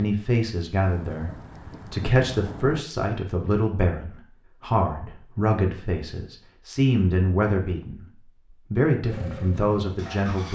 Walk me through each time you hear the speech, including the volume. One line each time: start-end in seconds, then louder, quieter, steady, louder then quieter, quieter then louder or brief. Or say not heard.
0.0-8.1 louder
8.7-10.5 brief.